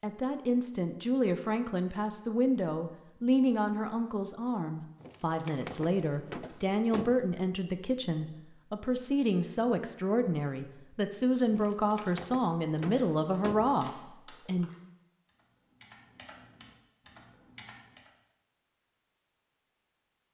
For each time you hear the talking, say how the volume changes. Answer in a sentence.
The talking can be heard from 0.0 to 14.7 s, at a steady volume.